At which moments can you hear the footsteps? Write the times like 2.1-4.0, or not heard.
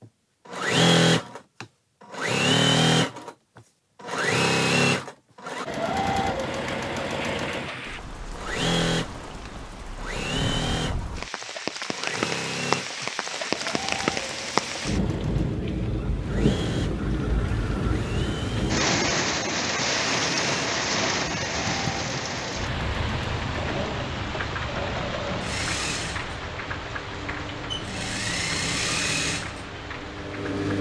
not heard.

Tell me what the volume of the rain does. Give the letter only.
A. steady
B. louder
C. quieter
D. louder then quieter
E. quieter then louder
D.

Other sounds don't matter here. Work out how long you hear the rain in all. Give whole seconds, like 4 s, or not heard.
24 s.